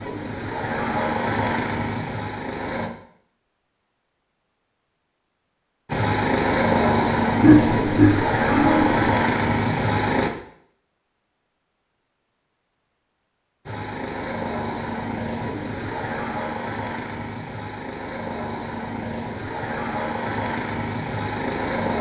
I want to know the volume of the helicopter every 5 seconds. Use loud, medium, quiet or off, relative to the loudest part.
medium, loud, medium, medium, medium.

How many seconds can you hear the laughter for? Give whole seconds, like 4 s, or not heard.
2 s.